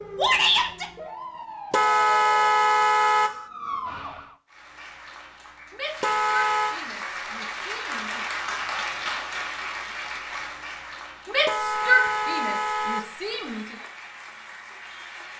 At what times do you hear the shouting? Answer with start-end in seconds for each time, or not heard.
0.1-0.8, 5.8-8.2, 11.3-13.7.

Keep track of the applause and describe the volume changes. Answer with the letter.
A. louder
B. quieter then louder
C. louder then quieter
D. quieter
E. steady
C.